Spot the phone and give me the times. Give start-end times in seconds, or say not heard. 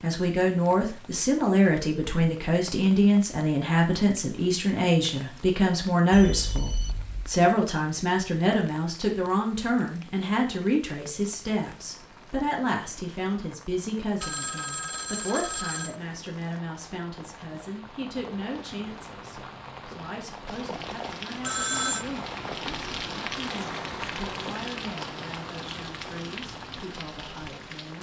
6.1-7.3, 14.2-15.9, 21.4-22.1.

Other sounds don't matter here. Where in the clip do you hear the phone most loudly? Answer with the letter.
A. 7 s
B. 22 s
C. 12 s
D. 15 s
B.